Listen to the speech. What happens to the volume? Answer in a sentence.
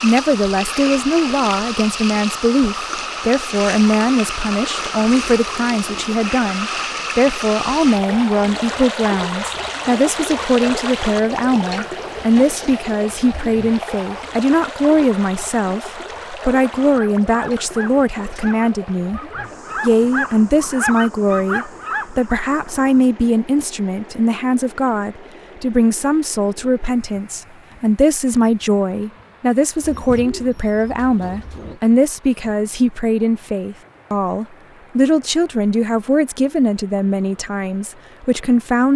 The volume of the speech stays about the same.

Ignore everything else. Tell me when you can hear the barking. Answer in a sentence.
You can hear the barking from 16.8 to 22.2 s.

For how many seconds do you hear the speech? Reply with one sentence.
The speech can be heard for 38 seconds in total.